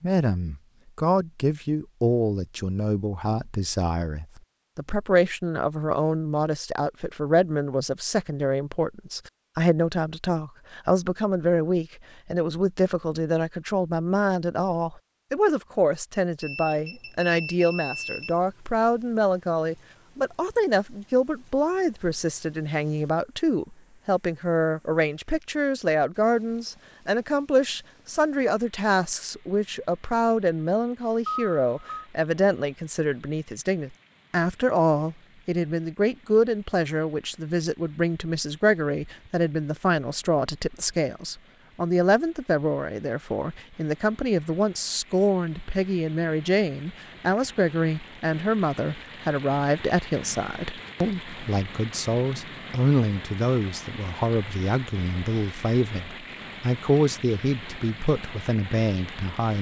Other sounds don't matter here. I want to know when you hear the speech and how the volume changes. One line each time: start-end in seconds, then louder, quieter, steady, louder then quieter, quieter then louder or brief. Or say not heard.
0.0-59.5 steady.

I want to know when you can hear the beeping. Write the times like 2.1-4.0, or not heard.
16.4-18.4, 31.2-32.0.